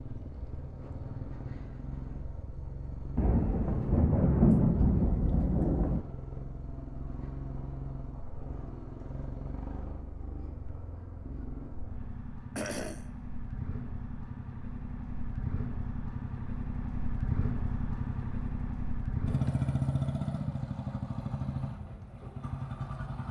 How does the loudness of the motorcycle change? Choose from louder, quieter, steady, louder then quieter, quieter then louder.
louder.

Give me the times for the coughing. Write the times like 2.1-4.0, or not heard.
12.6-13.1.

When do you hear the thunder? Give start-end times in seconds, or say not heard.
3.1-6.0.